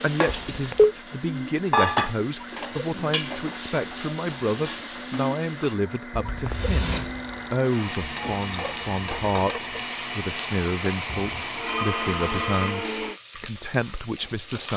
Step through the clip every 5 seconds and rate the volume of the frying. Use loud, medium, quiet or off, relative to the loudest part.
loud, medium, medium.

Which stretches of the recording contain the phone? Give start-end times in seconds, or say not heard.
0.5-0.9, 6.1-7.7, 11.1-12.8.